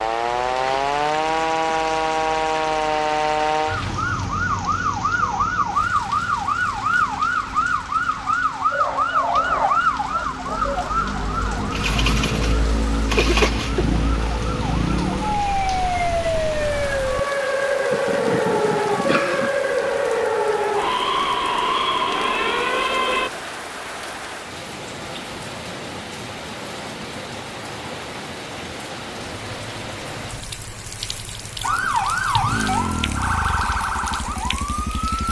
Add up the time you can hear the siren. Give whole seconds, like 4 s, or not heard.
27 s.